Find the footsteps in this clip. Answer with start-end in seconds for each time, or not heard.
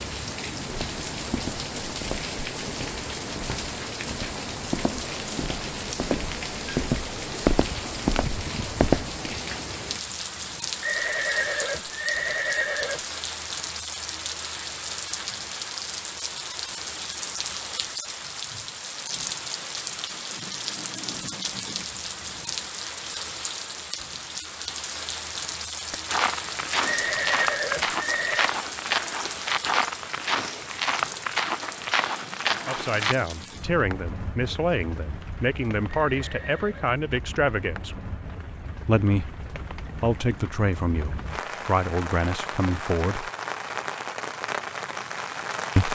0.7-9.2, 25.9-33.2.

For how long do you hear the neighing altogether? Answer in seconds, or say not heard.
5 s.